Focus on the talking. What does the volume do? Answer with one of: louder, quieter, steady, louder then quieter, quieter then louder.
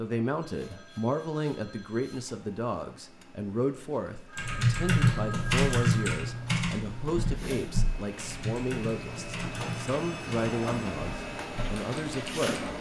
steady.